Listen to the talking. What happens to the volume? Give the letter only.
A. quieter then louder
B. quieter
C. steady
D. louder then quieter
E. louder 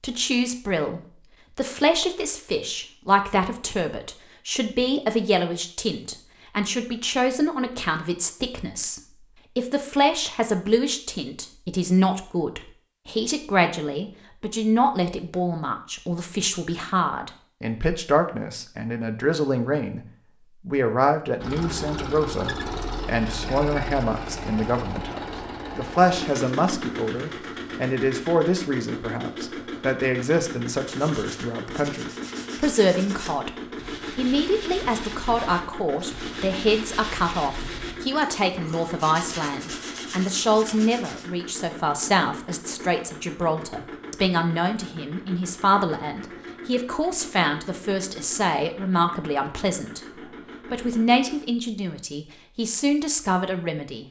C.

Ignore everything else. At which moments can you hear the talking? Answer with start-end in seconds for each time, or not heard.
0.0-33.5, 34.1-50.0, 50.6-54.0.